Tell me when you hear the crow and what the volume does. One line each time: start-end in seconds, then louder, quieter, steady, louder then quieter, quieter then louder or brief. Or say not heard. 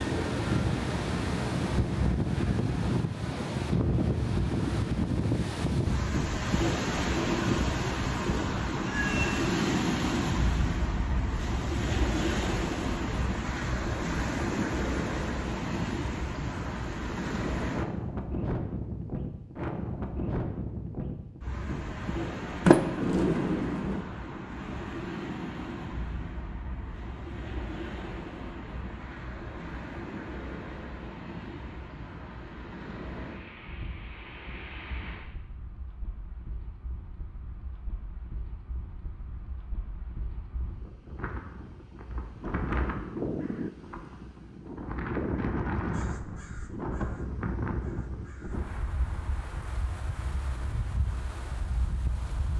42.9-48.6 quieter.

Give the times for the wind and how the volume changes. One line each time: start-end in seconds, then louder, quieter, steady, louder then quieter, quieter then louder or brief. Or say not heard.
0.0-52.5 quieter then louder.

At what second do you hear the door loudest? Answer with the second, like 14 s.
23 s.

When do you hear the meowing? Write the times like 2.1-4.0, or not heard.
8.8-9.4.